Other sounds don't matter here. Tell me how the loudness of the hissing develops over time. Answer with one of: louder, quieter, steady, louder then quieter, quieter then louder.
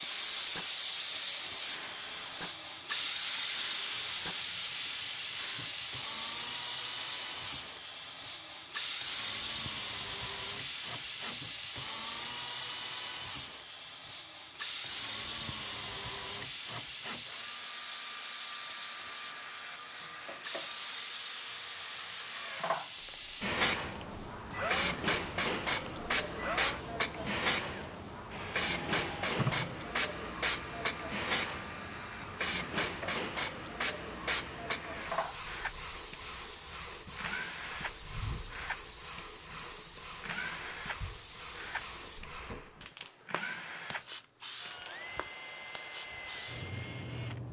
quieter.